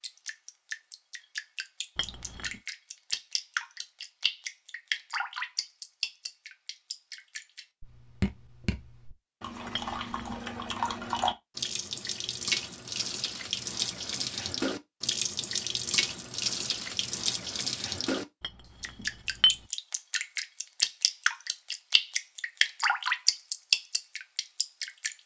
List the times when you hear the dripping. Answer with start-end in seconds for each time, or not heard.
0.0-25.2.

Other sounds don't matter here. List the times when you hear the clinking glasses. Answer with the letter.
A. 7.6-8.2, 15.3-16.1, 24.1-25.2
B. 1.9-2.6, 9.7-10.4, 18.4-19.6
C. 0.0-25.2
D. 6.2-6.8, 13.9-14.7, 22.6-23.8
B.